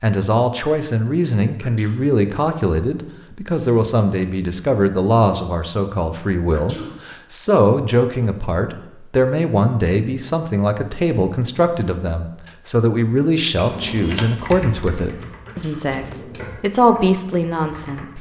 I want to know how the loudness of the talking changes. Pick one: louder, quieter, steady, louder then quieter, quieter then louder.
steady.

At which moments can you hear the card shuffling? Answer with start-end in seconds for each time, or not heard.
15.9-16.6.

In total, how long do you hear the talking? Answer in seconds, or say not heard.
18 s.